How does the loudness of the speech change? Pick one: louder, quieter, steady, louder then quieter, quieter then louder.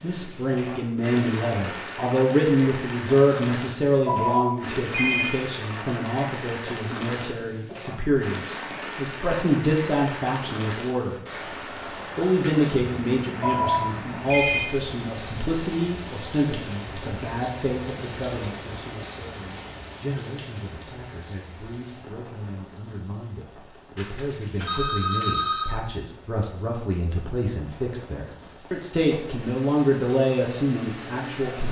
quieter then louder.